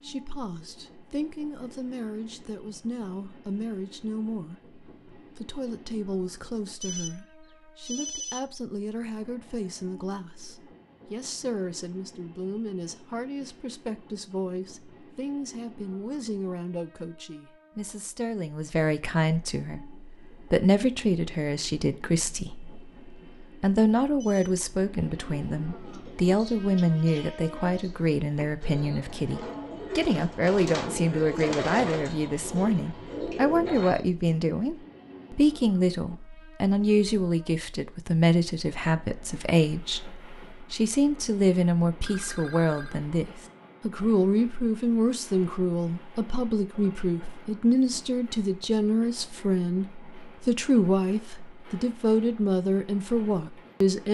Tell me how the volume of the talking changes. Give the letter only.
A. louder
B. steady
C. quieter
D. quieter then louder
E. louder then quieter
A.